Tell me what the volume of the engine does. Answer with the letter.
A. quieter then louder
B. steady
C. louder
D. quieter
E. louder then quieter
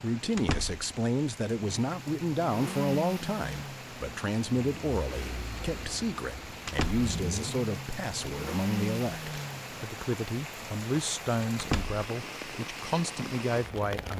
A.